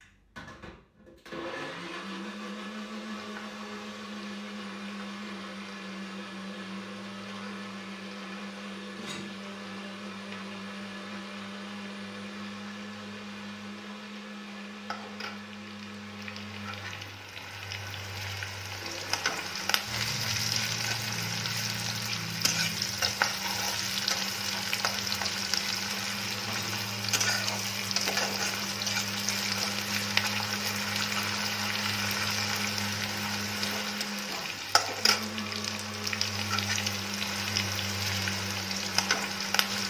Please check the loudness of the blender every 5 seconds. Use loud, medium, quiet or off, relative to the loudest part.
loud, loud, loud, medium, medium, loud, loud, loud.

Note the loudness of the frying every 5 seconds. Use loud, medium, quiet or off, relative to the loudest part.
quiet, quiet, quiet, medium, loud, loud, loud, loud.